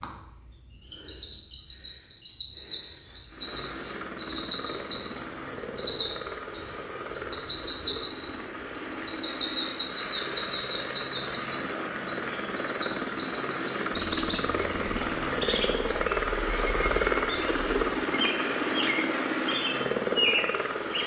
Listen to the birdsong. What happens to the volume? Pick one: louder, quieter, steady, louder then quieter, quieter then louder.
quieter.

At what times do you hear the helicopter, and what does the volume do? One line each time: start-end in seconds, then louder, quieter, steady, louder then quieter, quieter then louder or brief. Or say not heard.
3.2-21.0 louder.